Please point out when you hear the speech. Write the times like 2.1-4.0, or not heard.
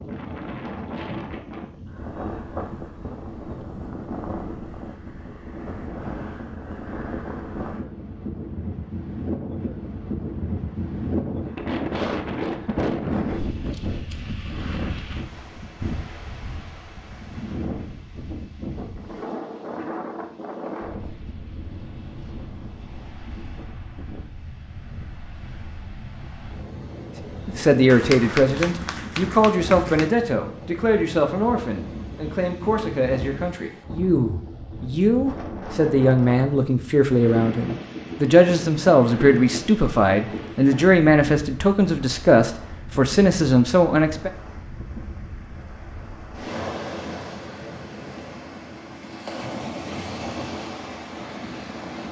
27.4-44.3.